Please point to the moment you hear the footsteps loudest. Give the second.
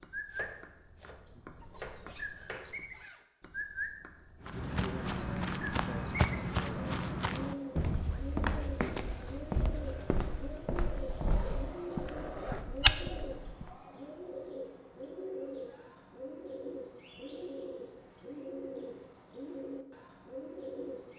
13 s.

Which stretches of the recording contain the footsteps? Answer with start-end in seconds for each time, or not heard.
4.4-13.8.